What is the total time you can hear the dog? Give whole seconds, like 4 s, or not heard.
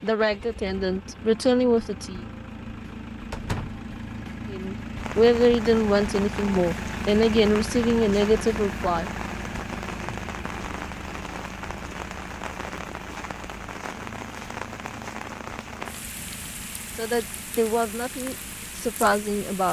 not heard.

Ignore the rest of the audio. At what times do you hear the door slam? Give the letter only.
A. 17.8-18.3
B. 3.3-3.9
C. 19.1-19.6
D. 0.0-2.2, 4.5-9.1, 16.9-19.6
B.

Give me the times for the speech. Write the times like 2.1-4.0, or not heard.
0.0-2.2, 4.5-9.1, 16.9-19.6.